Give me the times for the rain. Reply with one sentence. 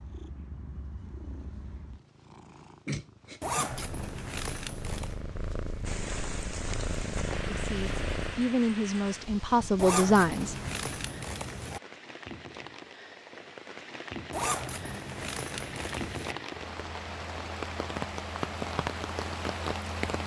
The rain can be heard from 5.8 to 20.2 s.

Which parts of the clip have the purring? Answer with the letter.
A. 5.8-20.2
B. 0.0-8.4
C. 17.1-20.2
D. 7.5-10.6
B.